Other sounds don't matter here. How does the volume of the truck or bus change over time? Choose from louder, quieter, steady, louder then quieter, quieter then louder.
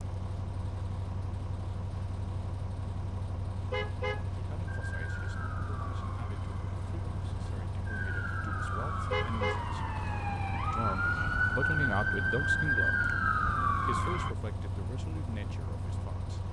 steady.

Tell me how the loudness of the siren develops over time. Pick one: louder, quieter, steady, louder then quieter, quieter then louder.
louder.